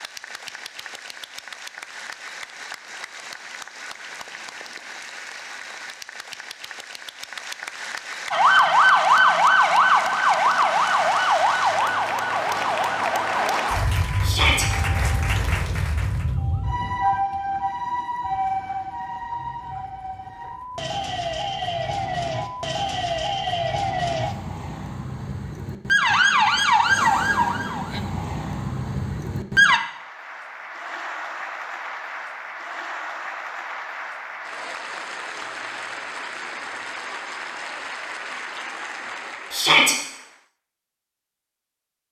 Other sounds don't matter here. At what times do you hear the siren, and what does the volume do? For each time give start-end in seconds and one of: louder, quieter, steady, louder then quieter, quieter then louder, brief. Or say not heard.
8.3-29.8 quieter then louder.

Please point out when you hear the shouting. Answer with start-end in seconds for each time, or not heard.
14.2-14.7, 39.5-40.0.